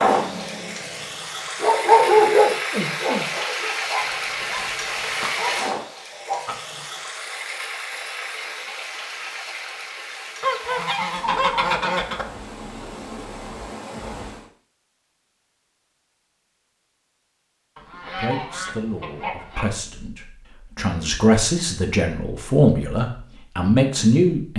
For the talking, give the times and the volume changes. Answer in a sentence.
The talking can be heard from 18.1 to 24.5 s, getting louder.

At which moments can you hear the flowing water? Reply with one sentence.
The flowing water can be heard from 0.0 to 14.5 s.